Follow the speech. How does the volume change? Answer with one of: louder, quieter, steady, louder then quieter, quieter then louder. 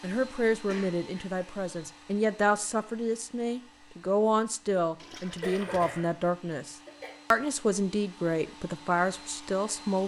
steady.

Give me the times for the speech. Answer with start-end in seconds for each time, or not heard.
0.0-10.0.